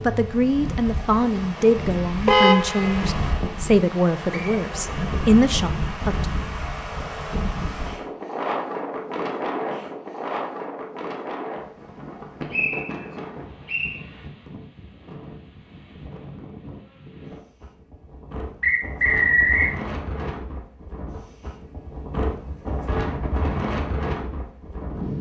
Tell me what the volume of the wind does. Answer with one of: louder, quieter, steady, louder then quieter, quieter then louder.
quieter then louder.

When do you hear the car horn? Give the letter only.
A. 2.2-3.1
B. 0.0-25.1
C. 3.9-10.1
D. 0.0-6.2
A.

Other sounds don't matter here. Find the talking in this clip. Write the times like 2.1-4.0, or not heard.
0.0-6.2.